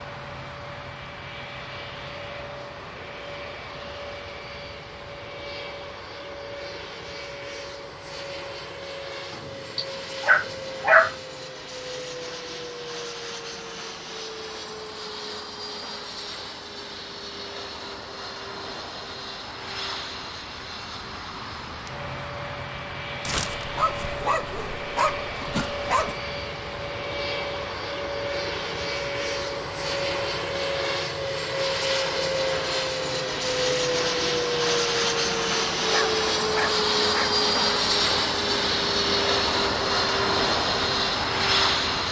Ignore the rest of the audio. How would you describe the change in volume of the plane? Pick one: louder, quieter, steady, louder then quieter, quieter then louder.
louder.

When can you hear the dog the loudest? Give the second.
11 s.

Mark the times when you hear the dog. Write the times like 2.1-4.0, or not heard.
9.3-11.2, 23.2-26.1, 35.8-37.4.